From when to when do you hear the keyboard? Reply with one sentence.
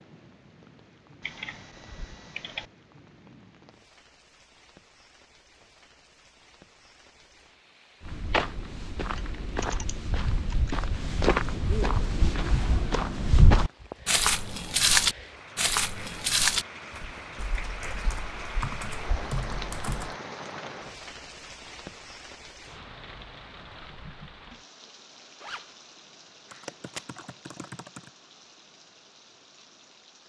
The keyboard can be heard from 1.2 to 2.7 s, from 9.0 to 10.8 s, from 17.4 to 20.1 s and from 26.5 to 28.1 s.